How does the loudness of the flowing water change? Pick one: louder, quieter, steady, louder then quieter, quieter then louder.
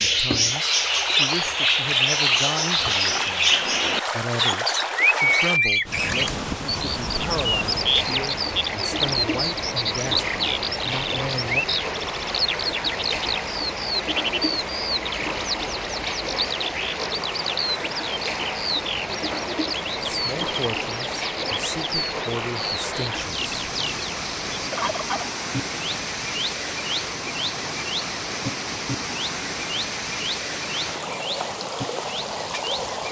steady.